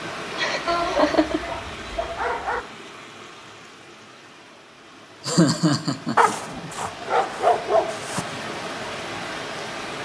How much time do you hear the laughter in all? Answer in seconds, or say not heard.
3 s.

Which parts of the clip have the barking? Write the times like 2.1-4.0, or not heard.
0.7-2.6, 6.2-8.3.